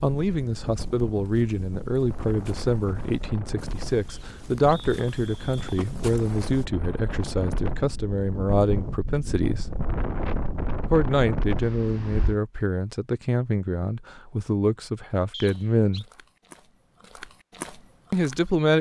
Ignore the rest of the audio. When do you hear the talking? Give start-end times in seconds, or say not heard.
0.0-9.7, 10.8-16.1, 18.1-18.7.